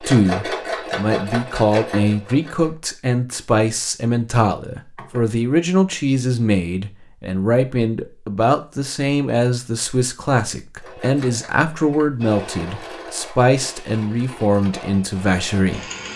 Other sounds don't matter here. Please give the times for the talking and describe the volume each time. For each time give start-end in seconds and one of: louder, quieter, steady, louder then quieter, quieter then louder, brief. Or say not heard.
0.0-15.8 steady.